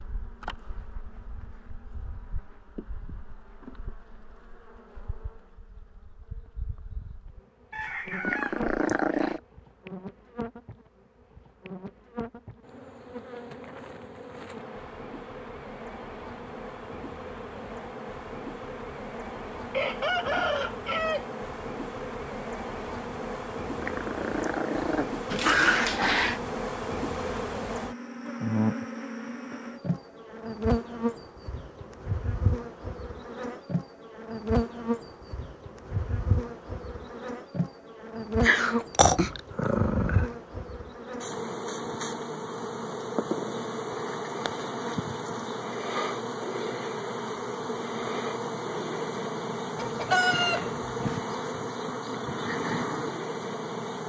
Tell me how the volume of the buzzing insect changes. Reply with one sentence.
The volume of the buzzing insect goes up.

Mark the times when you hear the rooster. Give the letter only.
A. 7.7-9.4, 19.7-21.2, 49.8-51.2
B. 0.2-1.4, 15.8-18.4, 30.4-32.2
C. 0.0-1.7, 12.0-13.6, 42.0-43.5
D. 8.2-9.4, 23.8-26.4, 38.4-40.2
A.